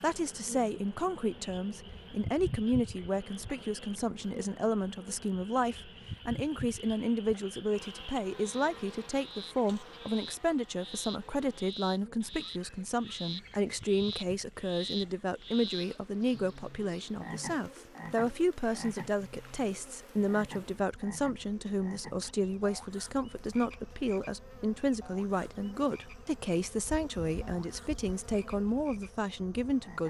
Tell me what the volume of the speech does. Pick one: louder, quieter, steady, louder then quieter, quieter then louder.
steady.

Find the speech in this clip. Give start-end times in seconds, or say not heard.
0.0-30.0.